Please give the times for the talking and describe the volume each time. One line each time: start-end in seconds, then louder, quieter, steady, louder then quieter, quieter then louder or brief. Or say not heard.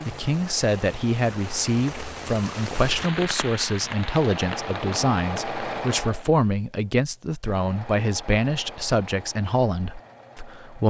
0.1-10.8 steady.